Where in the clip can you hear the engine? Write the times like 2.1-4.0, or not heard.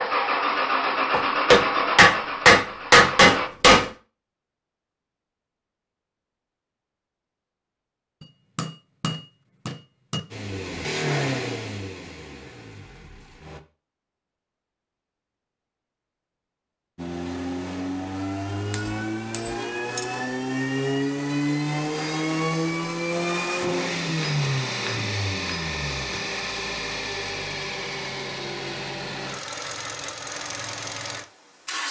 0.0-3.5, 10.3-13.6, 16.9-31.8.